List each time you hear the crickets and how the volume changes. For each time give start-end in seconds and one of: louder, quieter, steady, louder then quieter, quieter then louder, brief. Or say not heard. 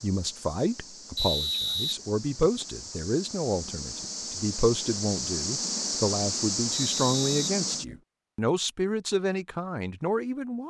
0.0-8.0 louder.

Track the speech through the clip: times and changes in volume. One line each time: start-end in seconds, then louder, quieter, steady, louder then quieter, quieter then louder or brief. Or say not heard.
0.0-10.6 steady.